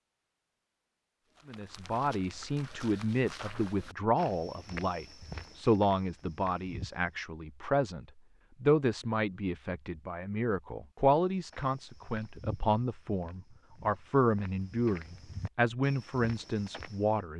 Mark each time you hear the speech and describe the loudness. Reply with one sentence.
The speech can be heard from 1.4 to 17.3 s, at a steady volume.